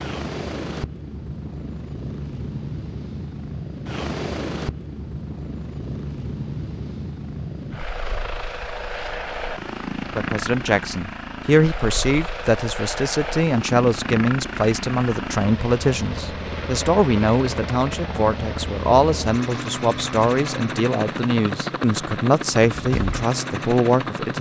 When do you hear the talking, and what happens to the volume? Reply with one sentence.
You can hear the talking from 10.2 to 24.3 s, at a steady volume.